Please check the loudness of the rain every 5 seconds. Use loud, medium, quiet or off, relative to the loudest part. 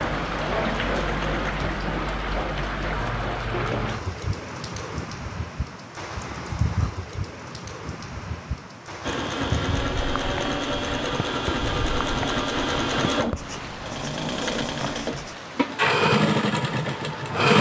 loud, medium, medium, medium.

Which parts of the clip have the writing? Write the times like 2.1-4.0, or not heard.
13.3-15.4.